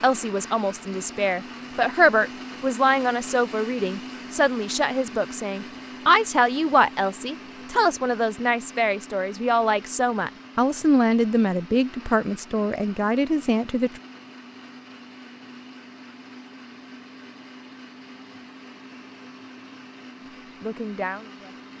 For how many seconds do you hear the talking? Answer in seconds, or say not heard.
15 s.